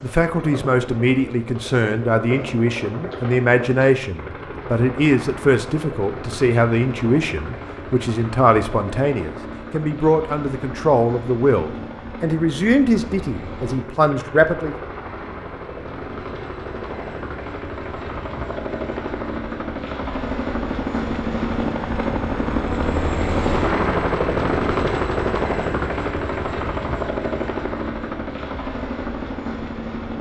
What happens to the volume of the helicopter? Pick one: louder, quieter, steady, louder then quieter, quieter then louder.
louder.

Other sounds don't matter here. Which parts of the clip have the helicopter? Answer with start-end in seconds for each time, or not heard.
0.0-30.1.